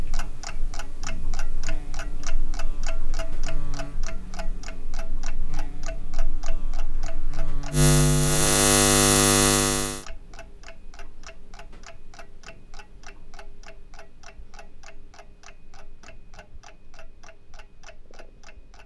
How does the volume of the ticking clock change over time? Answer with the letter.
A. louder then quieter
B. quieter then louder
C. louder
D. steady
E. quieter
E.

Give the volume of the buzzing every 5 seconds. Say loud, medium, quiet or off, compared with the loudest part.
quiet, loud, off, off.